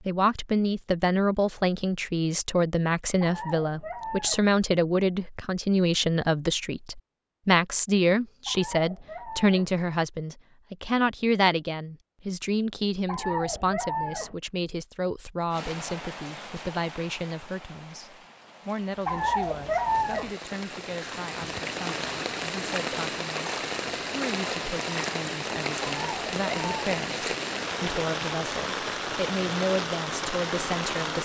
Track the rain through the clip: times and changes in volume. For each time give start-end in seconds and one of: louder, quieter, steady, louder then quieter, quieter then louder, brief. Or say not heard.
15.5-31.2 louder.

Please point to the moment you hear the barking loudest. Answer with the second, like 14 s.
20 s.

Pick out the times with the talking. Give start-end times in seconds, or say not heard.
0.1-31.2.